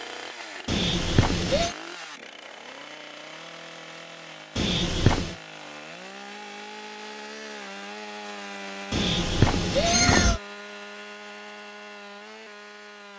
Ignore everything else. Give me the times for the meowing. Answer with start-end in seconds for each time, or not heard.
0.7-1.8, 4.5-5.3, 8.9-10.4.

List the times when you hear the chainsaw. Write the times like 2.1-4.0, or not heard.
0.0-13.1.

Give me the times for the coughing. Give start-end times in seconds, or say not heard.
not heard.